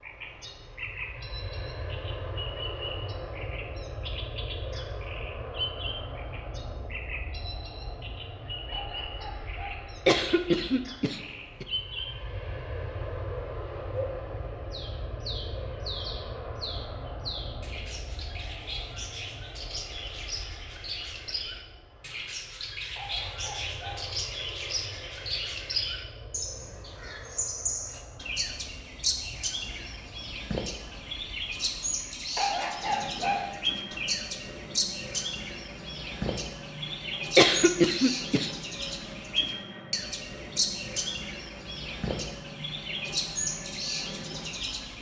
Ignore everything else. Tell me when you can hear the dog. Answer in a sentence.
You can hear the dog from 8.7 to 9.8 s, from 22.9 to 24.1 s and from 32.4 to 33.5 s.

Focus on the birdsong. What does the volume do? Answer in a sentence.
The volume of the birdsong goes up.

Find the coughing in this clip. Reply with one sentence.
You can hear the coughing from 10.1 to 11.7 s and from 37.4 to 38.5 s.